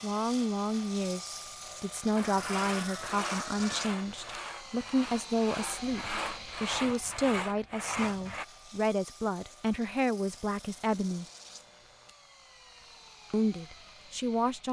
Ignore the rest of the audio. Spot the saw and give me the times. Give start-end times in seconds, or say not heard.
2.1-8.4.